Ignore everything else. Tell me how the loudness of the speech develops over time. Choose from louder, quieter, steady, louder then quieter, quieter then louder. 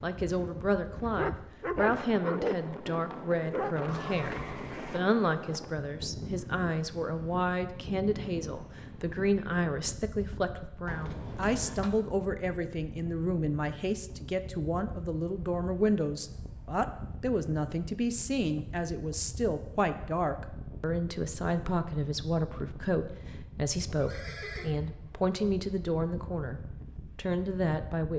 steady.